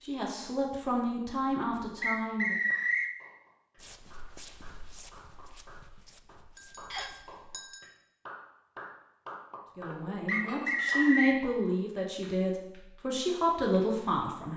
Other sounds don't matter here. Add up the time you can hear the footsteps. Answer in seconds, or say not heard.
4 s.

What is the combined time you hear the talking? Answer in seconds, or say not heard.
7 s.